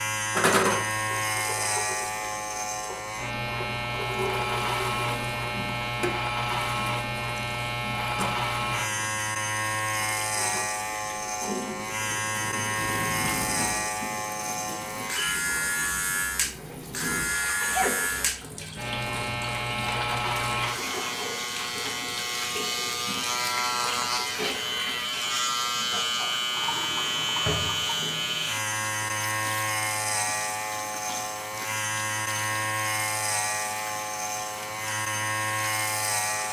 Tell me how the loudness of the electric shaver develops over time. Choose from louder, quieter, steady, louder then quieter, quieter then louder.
steady.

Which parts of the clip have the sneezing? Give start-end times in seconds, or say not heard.
17.6-18.1.